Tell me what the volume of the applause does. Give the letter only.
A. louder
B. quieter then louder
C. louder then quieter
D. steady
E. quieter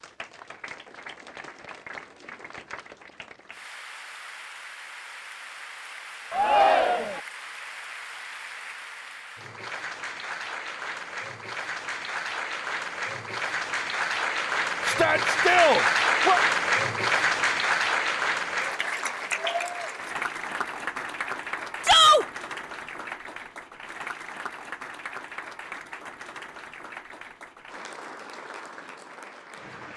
C.